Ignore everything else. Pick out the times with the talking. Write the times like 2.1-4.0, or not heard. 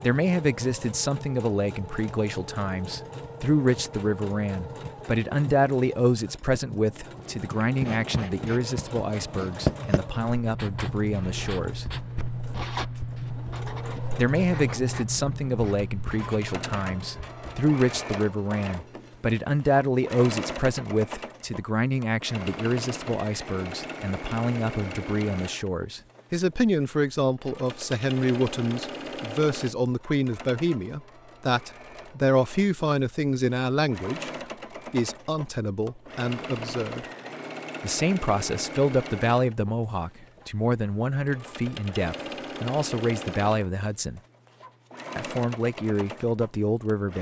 0.0-11.8, 14.2-34.3, 34.9-37.0, 37.8-44.2, 45.1-47.1.